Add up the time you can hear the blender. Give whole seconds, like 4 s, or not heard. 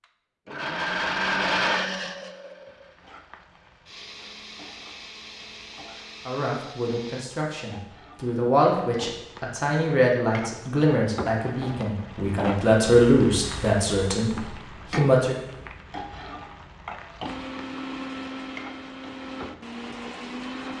11 s.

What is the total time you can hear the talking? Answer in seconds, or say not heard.
9 s.